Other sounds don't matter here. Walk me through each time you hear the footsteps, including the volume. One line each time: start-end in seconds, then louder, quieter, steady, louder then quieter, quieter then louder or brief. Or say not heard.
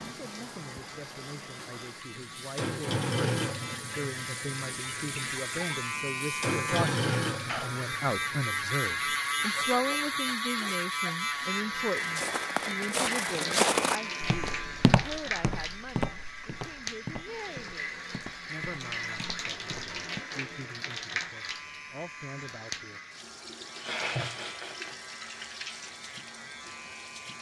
11.9-20.2 quieter.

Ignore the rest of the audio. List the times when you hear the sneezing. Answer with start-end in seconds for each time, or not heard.
7.4-7.8.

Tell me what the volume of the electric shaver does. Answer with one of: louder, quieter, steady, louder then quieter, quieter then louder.
louder then quieter.